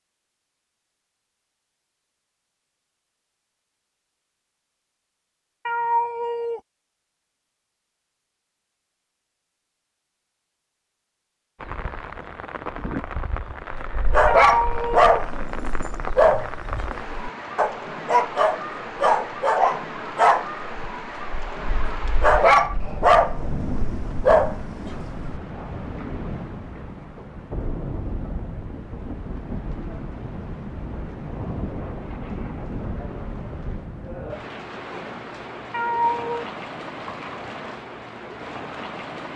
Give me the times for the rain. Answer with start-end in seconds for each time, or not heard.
11.6-39.3.